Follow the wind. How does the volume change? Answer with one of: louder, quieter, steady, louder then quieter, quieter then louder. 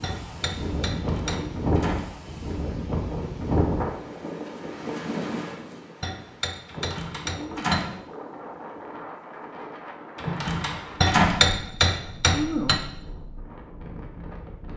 quieter.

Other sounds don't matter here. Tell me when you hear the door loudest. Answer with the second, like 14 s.
11 s.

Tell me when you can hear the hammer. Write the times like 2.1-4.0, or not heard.
0.0-1.6, 6.0-8.1, 11.0-12.8.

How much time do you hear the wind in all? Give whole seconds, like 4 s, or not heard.
15 s.